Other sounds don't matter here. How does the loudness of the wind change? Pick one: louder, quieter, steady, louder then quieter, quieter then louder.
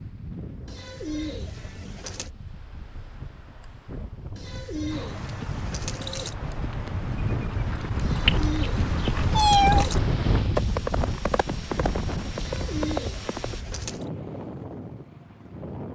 louder then quieter.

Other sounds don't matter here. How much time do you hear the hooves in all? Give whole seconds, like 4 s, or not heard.
9 s.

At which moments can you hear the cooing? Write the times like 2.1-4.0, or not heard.
0.7-2.3, 4.3-6.3, 8.0-10.0, 12.3-14.1.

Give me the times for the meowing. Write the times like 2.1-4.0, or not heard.
9.3-9.8.